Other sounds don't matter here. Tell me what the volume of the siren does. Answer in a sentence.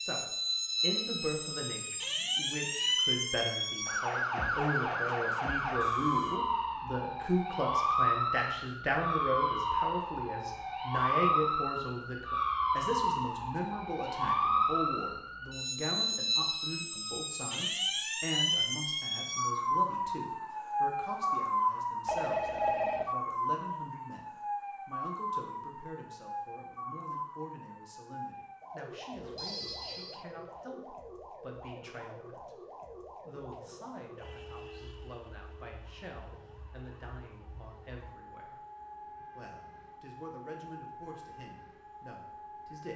The loudness of the siren goes down.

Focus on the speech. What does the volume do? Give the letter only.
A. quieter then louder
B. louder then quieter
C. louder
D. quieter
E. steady
D.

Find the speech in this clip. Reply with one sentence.
You can hear the speech from 0.0 to 38.6 s and from 39.4 to 42.9 s.